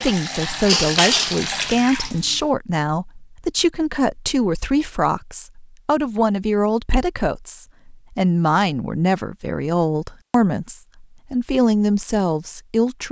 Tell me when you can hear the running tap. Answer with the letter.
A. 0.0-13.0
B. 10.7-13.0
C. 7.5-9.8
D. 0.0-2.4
D.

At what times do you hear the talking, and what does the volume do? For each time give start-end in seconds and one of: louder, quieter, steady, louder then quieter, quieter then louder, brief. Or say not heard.
0.0-13.0 steady.